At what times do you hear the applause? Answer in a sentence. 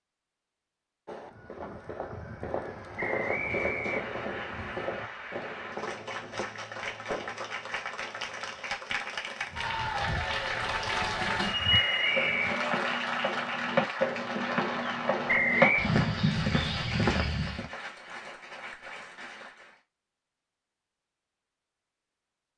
The applause can be heard from 3.2 to 19.8 s.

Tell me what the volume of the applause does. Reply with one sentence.
The volume of the applause goes up, then down.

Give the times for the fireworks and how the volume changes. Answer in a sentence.
The fireworks can be heard from 1.1 to 7.4 s, getting louder then quieter.